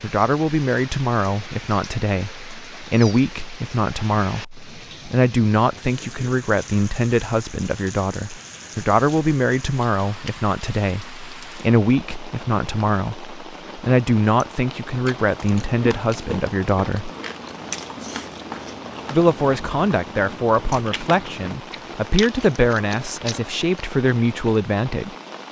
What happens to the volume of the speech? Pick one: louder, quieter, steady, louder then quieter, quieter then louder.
steady.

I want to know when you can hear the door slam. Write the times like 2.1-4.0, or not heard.
not heard.